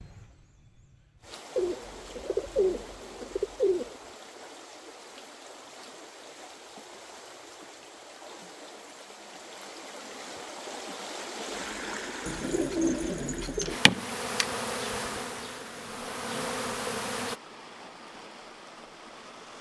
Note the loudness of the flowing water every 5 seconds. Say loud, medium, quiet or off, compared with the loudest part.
medium, medium, loud, medium.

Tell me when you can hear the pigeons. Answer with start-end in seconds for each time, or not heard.
1.6-4.0, 12.2-13.8.